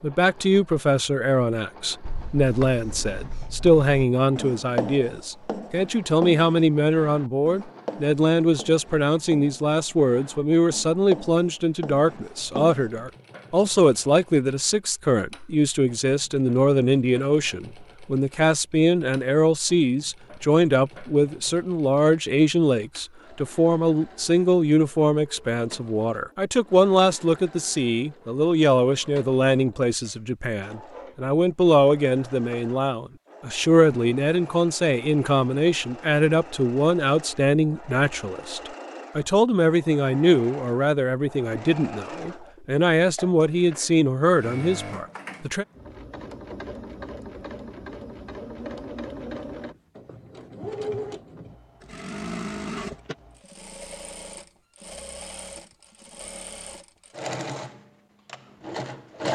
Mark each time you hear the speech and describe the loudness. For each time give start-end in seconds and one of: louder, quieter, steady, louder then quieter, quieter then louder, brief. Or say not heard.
0.0-45.6 steady.